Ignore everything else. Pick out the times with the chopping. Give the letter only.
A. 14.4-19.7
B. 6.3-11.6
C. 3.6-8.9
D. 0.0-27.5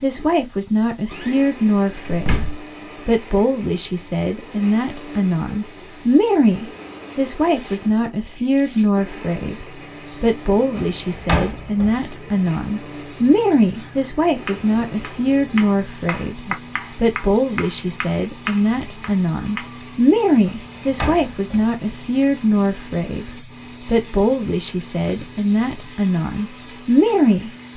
A.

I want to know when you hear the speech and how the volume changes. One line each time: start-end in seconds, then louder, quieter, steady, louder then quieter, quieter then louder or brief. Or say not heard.
0.0-27.5 steady.